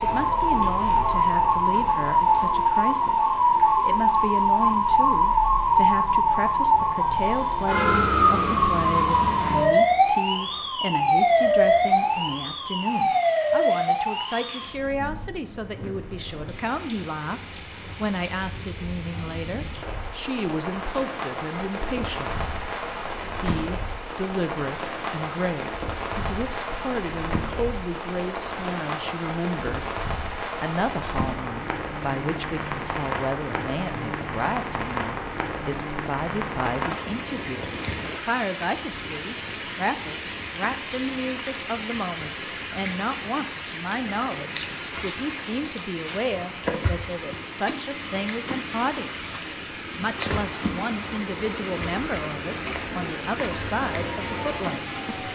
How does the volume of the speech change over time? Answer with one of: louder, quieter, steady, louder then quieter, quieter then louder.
steady.